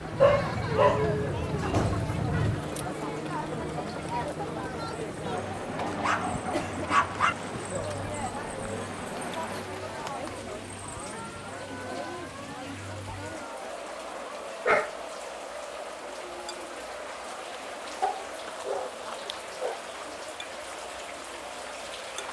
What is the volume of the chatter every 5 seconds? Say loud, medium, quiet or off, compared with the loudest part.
loud, loud, medium, medium, medium.